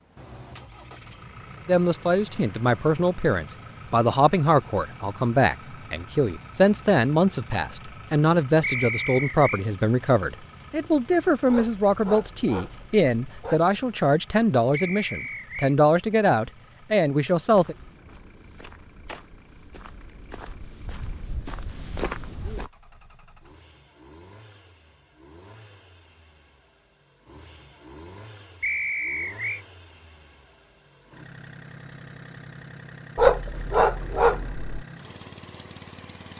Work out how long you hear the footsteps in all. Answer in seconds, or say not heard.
5 s.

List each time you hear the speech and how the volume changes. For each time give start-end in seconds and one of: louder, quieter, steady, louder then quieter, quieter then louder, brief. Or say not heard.
1.6-17.8 steady.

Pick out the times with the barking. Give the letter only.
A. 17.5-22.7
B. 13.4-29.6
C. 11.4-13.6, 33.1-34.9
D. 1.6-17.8
C.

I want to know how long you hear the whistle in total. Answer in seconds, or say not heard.
3 s.